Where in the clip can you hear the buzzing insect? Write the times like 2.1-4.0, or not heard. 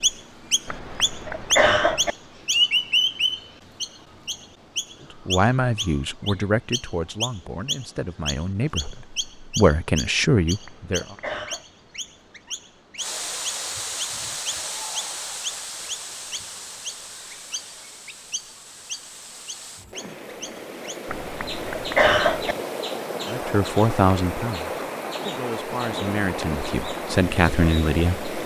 not heard.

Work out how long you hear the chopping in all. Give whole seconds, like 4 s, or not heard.
not heard.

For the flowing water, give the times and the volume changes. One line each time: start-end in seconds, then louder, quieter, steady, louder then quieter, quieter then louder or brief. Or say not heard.
12.9-28.4 quieter then louder.